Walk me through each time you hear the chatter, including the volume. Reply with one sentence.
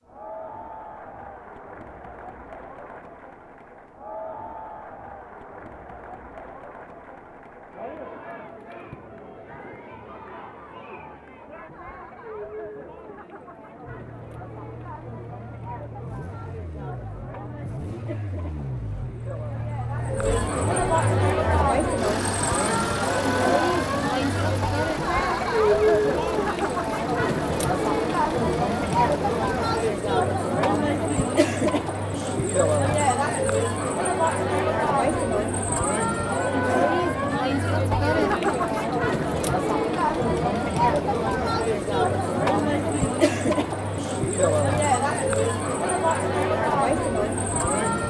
The chatter can be heard from 0.0 to 48.0 s, getting louder.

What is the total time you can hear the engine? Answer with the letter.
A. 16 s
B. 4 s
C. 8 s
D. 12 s
A.